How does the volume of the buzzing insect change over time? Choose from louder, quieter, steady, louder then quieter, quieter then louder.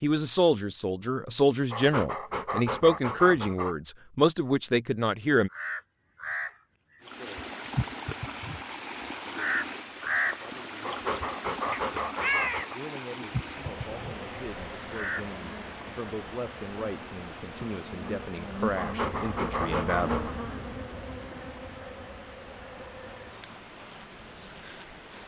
louder then quieter.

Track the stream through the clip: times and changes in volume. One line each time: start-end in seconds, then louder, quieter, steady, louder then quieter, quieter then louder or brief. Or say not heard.
7.0-25.2 quieter.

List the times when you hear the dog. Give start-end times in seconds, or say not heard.
1.7-3.8, 10.8-12.8, 18.8-20.4.